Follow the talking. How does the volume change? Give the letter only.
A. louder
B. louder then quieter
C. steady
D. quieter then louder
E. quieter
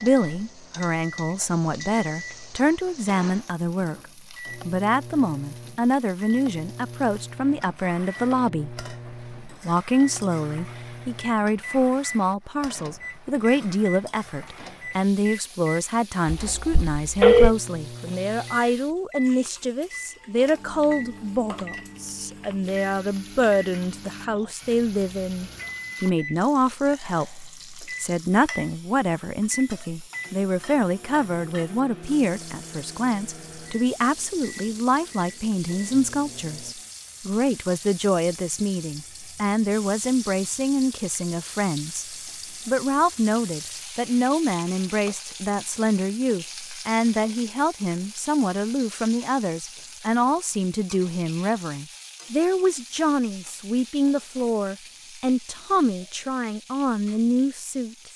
C.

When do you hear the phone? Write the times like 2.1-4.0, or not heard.
16.2-17.6.